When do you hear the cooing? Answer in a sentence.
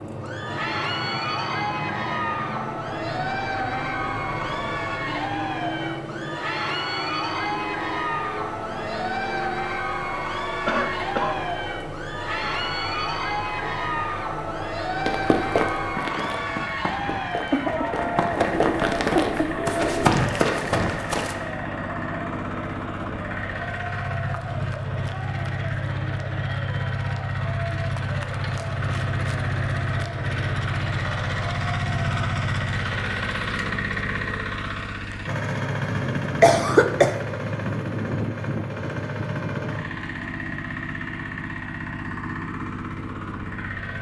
The cooing can be heard from 18.5 to 20.2 s.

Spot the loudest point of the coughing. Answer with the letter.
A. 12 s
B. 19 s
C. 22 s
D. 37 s
D.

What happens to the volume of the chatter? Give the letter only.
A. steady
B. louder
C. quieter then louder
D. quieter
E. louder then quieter
D.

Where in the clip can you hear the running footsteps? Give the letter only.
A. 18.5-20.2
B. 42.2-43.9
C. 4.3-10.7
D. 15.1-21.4
D.